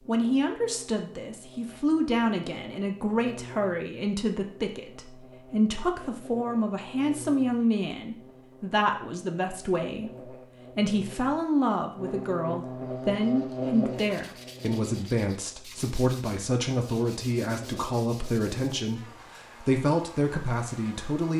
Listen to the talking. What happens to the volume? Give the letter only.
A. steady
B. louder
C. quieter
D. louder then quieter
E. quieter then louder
A.